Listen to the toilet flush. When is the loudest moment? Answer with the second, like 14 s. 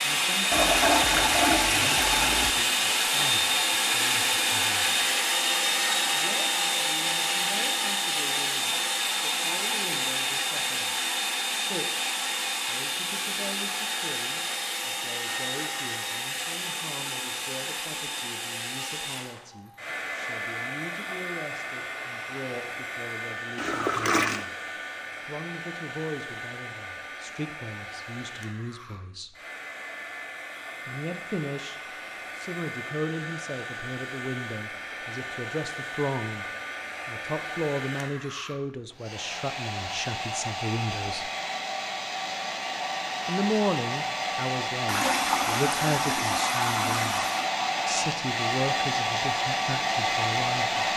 1 s.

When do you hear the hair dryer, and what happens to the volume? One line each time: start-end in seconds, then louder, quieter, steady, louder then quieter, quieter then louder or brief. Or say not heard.
0.0-50.9 quieter then louder.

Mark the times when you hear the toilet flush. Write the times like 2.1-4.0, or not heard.
0.5-2.5, 23.6-24.4, 44.9-47.5.